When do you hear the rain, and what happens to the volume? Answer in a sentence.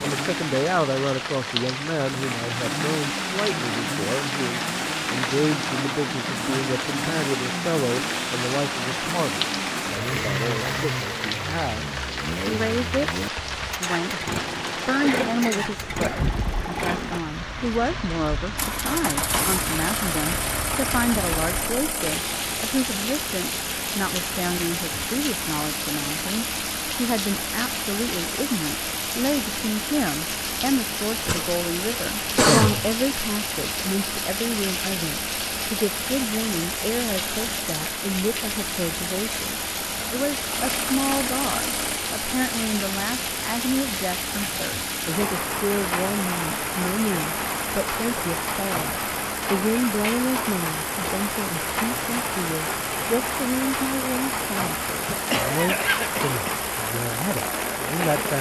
The rain can be heard from 0.0 to 58.3 s, at a steady volume.